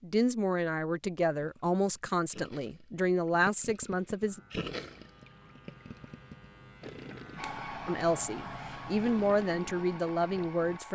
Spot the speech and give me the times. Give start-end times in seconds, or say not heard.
0.0-4.4, 7.8-10.9.